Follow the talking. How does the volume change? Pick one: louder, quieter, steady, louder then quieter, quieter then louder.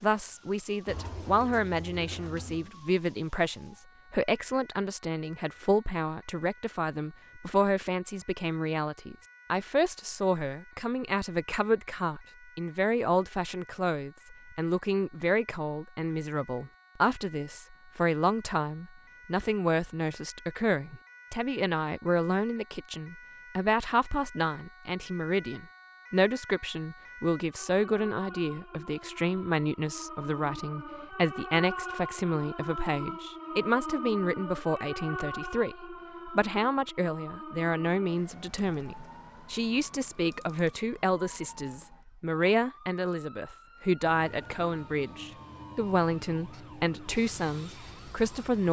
steady.